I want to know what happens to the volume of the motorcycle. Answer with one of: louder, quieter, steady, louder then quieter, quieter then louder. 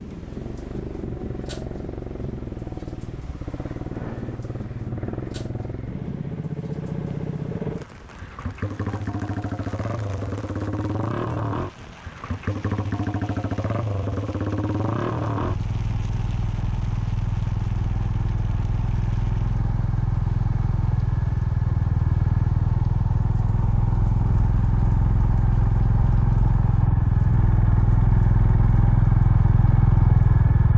louder.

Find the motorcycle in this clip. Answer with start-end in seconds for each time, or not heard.
0.0-30.7.